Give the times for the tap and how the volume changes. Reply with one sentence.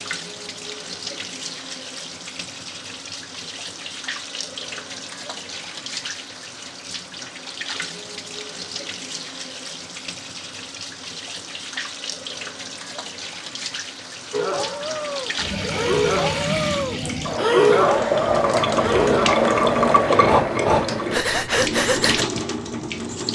You can hear the tap from 0.0 to 23.3 s, getting louder.